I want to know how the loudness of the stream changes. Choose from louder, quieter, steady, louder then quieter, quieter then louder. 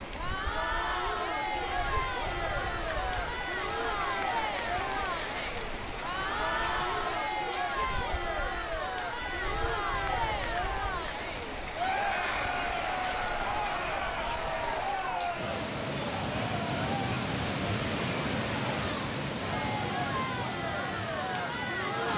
louder.